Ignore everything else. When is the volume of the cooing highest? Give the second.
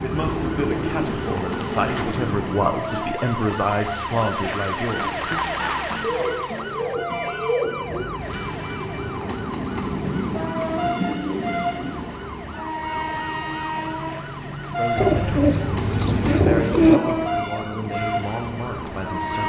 17 s.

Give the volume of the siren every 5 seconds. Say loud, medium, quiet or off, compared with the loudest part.
loud, loud, medium, medium.